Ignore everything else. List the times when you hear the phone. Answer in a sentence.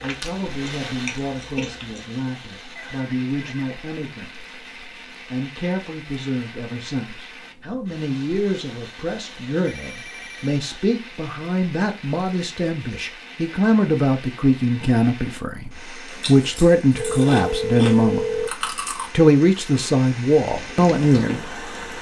The phone can be heard from 2.8 to 3.8 s, from 9.6 to 10.6 s and from 16.9 to 18.5 s.